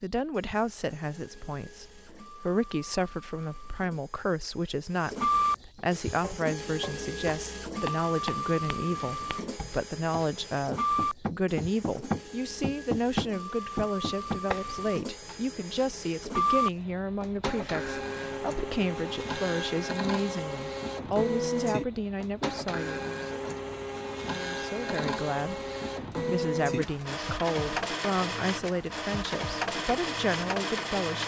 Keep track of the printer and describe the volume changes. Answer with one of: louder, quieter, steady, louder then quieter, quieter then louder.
steady.